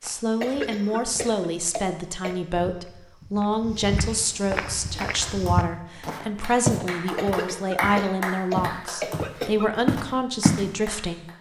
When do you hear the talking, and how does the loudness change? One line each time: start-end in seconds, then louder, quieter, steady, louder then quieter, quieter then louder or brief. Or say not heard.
0.0-11.2 steady.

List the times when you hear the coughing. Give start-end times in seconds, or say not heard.
0.4-2.4, 7.2-9.7.